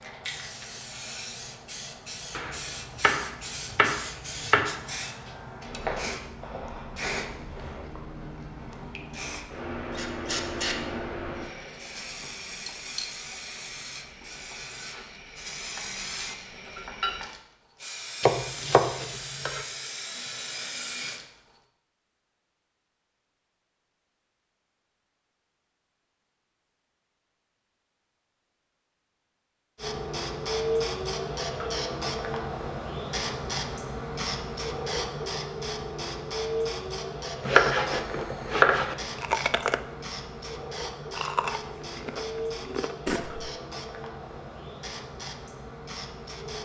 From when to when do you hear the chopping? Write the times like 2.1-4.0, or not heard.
2.4-4.8, 18.2-19.6, 37.4-39.0.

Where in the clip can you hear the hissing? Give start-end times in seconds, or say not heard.
0.0-21.2, 29.8-46.6.